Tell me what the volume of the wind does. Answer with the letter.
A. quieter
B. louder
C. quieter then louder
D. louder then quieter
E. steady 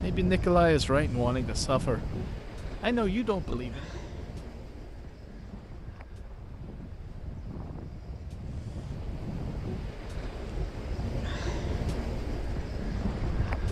C.